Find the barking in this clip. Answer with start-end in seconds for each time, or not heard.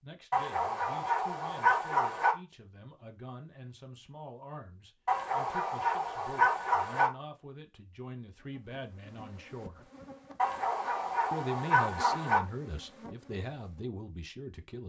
0.3-2.4, 5.0-7.1, 10.3-12.4.